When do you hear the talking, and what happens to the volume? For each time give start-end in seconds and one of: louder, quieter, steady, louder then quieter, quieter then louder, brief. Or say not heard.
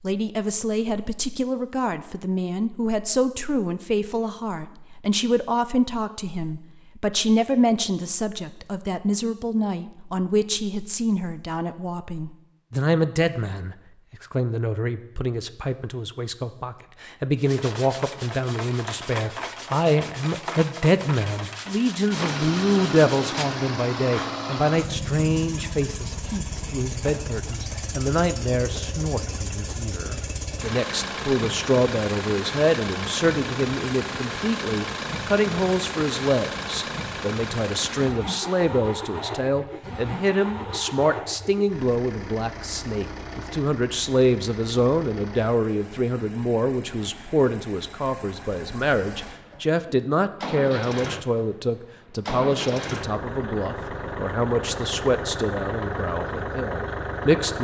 0.0-57.6 steady.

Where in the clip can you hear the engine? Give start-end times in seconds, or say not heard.
22.1-57.6.